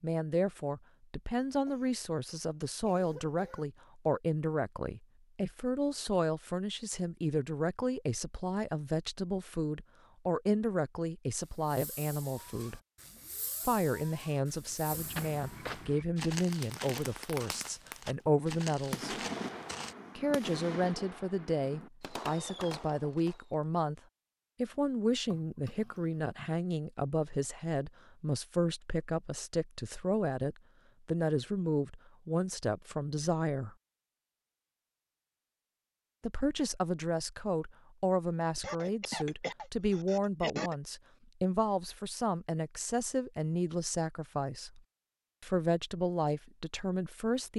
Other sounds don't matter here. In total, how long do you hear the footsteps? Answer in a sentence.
You can hear the footsteps for 5 seconds altogether.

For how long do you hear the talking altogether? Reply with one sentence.
You can hear the talking for 42 seconds altogether.